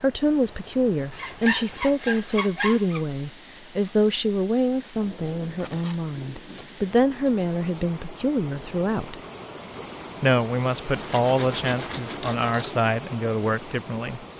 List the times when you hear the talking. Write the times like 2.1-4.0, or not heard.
0.0-9.2, 10.2-14.2.